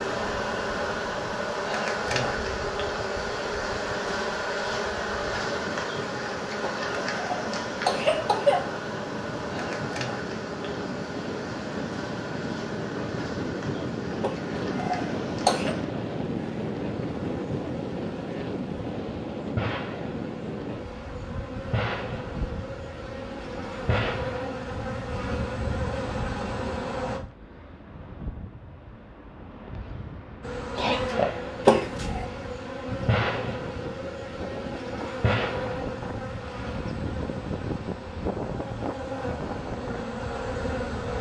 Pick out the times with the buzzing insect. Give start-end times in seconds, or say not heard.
0.0-27.2, 30.4-41.1.